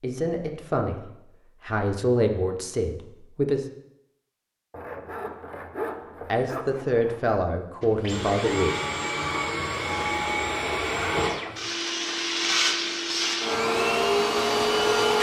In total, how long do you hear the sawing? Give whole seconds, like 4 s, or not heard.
3 s.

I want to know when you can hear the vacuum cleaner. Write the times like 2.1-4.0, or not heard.
7.8-15.1.